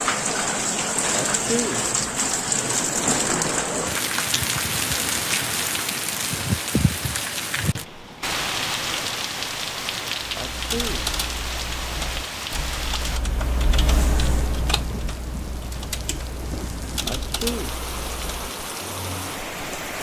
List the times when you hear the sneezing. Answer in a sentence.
The sneezing can be heard from 1.1 to 1.9 s, from 10.3 to 11.1 s and from 17.1 to 17.8 s.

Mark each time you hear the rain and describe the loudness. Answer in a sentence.
The rain can be heard from 0.0 to 19.9 s, getting quieter.